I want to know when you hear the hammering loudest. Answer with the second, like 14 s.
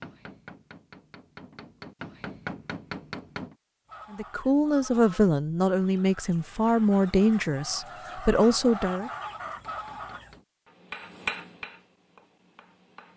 11 s.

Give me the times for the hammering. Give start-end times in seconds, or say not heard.
0.0-3.5, 9.4-13.1.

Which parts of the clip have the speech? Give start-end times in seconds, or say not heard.
4.1-9.1.